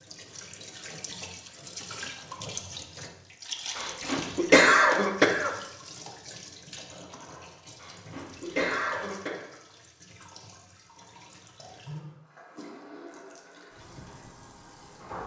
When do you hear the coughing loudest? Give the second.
5 s.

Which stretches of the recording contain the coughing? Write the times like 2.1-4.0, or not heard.
3.8-5.5, 7.8-9.3.